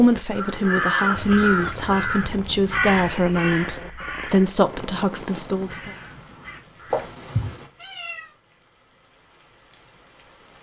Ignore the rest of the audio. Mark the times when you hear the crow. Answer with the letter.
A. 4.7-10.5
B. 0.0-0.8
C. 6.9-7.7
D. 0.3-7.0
D.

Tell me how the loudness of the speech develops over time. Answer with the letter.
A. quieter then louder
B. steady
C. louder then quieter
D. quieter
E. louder
B.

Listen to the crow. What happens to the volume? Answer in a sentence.
The volume of the crow goes down.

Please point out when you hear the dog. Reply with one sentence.
You can't hear the dog here.